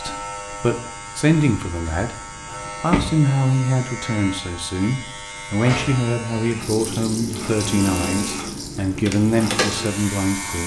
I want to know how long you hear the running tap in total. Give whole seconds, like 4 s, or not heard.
4 s.